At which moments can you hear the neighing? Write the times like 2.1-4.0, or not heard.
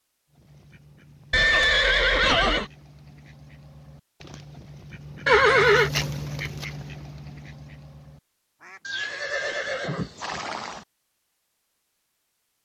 1.3-2.7, 5.2-5.9, 8.8-10.8.